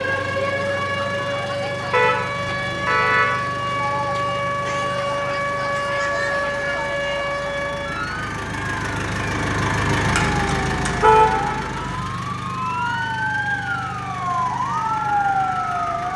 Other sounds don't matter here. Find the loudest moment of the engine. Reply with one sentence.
The loudest moment of the engine is at 10 seconds.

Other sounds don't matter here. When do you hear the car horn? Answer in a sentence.
You can hear the car horn from 1.9 to 3.3 s and from 11.0 to 11.7 s.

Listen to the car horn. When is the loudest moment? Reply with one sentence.
The loudest moment of the car horn is at 11 seconds.